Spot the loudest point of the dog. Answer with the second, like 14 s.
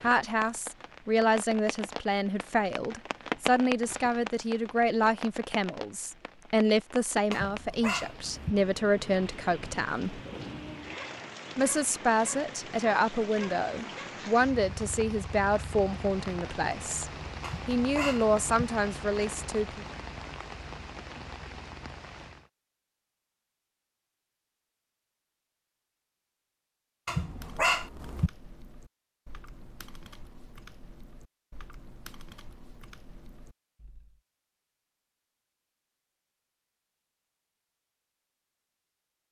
28 s.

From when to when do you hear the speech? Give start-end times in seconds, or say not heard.
0.0-10.2, 11.6-19.9.